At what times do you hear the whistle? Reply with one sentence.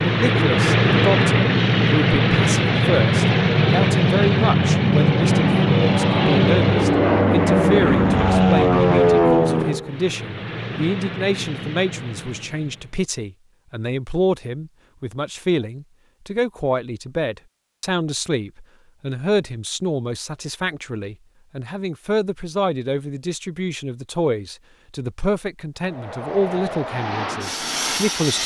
The whistle can't be heard in this clip.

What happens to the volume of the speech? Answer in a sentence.
The volume of the speech stays about the same.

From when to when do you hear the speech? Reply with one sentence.
The speech can be heard from 0.0 to 28.4 s.